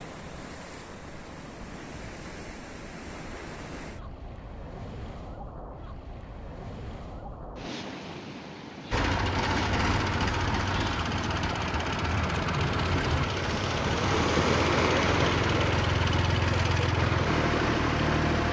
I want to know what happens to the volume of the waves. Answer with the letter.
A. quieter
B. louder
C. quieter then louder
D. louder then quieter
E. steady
B.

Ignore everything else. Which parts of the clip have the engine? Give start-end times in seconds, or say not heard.
8.9-18.4.